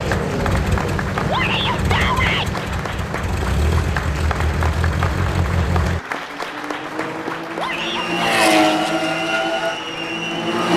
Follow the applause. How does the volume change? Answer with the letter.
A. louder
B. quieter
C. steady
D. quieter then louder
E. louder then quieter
C.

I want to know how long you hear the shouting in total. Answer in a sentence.
The shouting can be heard for 2 seconds in total.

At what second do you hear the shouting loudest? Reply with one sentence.
The loudest moment of the shouting is at 2 seconds.